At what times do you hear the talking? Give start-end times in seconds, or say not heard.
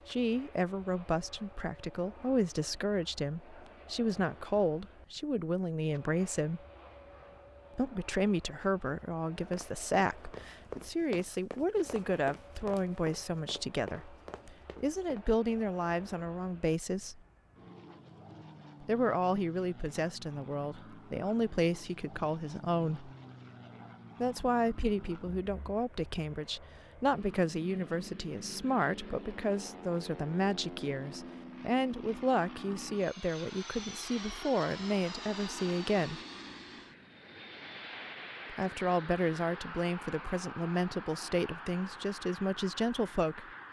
0.1-6.6, 7.8-17.2, 18.8-23.1, 24.2-36.2, 38.5-43.5.